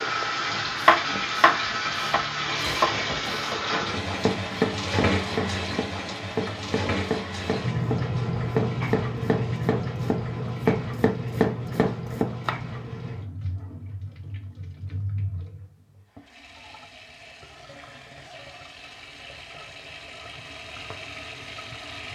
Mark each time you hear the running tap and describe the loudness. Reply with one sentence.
You can hear the running tap from 0.0 to 22.1 s, getting quieter.